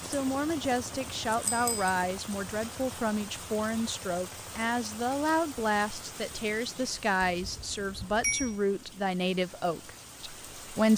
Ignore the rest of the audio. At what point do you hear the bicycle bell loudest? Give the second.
8 s.